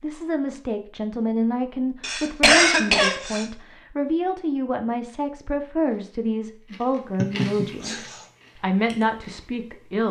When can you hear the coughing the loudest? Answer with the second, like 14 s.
3 s.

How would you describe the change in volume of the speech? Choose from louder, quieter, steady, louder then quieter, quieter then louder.
steady.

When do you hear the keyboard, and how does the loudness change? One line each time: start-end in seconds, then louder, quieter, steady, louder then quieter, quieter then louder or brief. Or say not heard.
not heard.